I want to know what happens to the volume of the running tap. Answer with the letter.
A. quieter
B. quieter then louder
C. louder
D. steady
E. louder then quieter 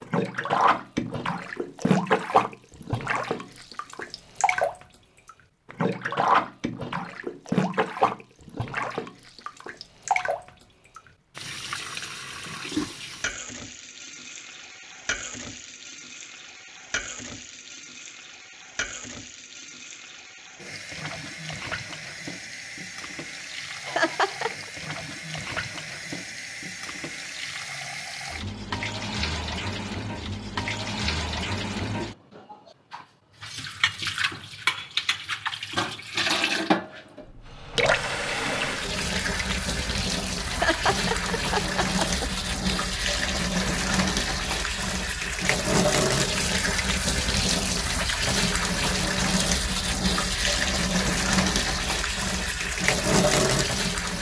B.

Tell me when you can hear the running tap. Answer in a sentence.
The running tap can be heard from 0.0 to 54.1 s.